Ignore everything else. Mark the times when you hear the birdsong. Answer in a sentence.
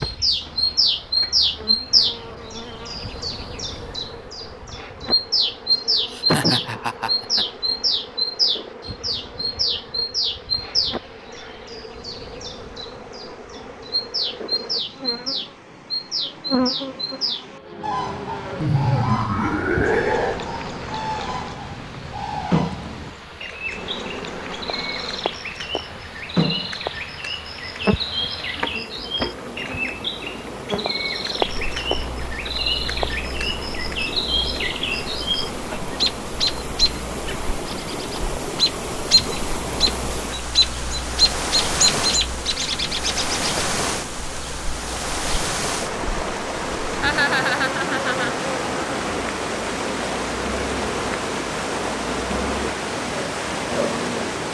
The birdsong can be heard from 0.0 to 43.5 s.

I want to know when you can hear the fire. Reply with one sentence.
You can't hear the fire here.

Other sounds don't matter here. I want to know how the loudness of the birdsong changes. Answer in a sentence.
The loudness of the birdsong goes down, then up.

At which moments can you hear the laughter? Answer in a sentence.
You can hear the laughter from 6.1 to 7.5 s, from 18.6 to 20.4 s and from 47.0 to 48.5 s.